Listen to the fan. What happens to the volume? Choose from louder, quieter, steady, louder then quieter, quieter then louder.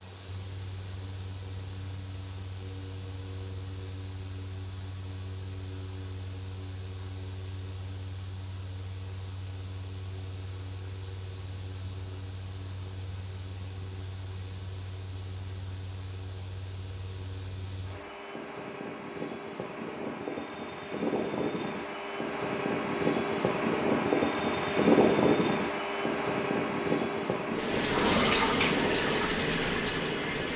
louder.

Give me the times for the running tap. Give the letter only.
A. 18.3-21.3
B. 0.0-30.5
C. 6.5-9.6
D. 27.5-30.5
D.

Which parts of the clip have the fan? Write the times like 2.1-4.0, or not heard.
0.0-30.5.